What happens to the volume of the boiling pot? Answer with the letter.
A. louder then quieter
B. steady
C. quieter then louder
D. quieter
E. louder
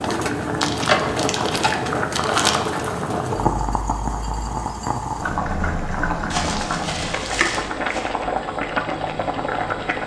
B.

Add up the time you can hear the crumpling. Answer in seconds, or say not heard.
4 s.